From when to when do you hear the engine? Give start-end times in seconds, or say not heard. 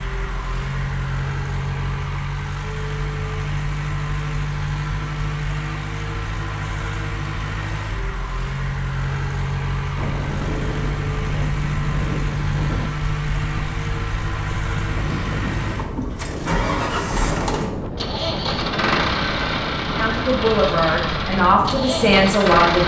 0.0-22.8.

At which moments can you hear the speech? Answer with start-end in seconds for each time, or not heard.
19.9-22.8.